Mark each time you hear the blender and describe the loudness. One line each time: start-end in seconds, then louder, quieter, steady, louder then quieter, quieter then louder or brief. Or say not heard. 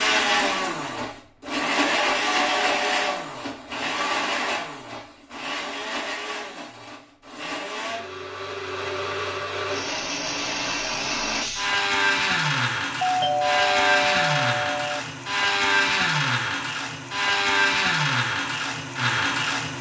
0.0-19.7 quieter then louder.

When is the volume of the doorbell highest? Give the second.
13 s.